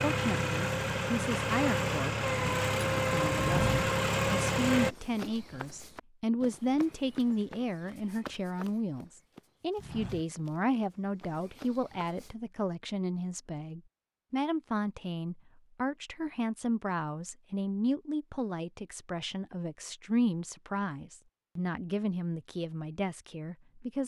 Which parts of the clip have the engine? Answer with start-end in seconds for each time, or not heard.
0.0-5.0.